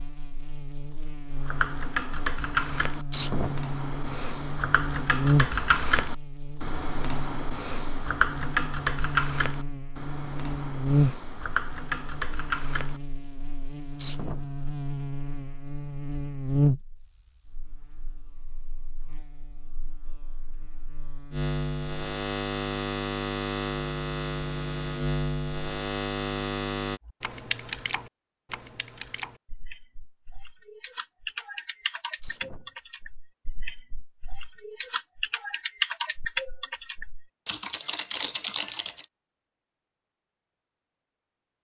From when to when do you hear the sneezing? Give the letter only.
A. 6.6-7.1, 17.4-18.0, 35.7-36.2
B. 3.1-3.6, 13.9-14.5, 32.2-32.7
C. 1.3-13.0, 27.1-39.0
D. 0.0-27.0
B.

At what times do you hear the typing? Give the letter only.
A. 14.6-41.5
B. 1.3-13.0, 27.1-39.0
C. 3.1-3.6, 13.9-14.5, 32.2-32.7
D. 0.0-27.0
B.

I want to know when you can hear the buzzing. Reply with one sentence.
The buzzing can be heard from 0.0 to 27.0 s.